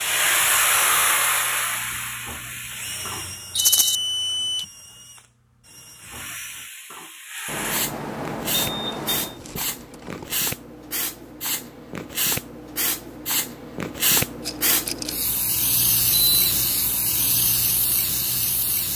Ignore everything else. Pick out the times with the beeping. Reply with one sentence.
You can hear the beeping from 3.5 to 4.7 s, from 7.5 to 9.4 s and from 16.1 to 16.6 s.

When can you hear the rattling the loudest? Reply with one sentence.
The volume of the rattling peaks at 4 seconds.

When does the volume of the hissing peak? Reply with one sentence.
The loudest moment of the hissing is at 1 second.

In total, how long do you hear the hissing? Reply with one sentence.
The hissing can be heard for 16 seconds in total.